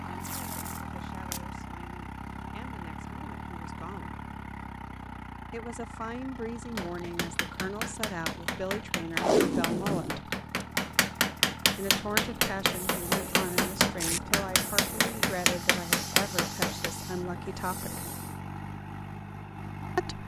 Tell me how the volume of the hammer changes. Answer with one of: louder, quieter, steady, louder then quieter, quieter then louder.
louder.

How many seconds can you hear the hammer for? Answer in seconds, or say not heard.
10 s.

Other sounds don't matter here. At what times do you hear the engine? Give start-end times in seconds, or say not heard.
0.0-20.2.